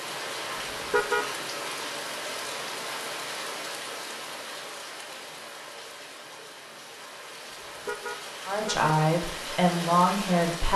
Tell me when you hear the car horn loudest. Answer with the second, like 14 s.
1 s.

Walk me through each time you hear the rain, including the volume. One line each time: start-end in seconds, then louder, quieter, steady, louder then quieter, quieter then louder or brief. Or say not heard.
0.0-10.7 quieter then louder.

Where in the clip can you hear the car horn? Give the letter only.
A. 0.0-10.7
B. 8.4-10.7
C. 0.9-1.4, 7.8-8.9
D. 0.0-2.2
C.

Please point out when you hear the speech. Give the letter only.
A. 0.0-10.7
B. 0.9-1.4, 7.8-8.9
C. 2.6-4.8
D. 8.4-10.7
D.